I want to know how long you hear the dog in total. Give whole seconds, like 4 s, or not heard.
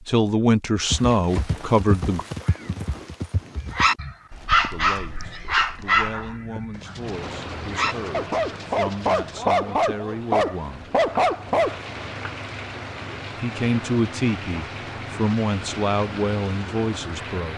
8 s.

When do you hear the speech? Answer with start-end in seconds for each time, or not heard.
0.1-2.2, 4.7-10.9, 13.3-17.5.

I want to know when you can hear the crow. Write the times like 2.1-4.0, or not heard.
not heard.